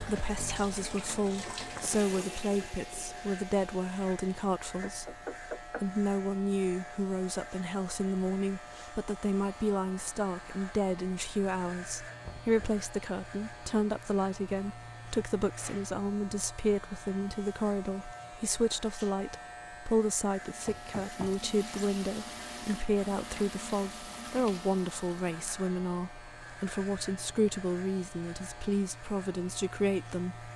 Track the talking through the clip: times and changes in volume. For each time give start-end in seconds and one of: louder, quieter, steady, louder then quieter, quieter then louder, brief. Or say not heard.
0.0-30.4 steady.